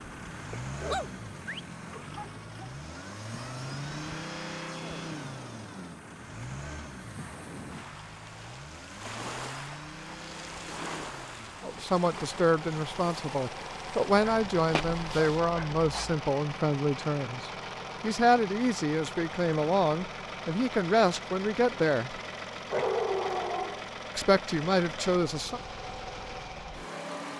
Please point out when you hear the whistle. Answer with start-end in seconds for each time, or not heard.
not heard.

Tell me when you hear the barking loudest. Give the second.
23 s.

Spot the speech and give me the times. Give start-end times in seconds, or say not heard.
11.6-22.2, 24.1-25.6.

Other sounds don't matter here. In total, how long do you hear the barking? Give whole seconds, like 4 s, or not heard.
5 s.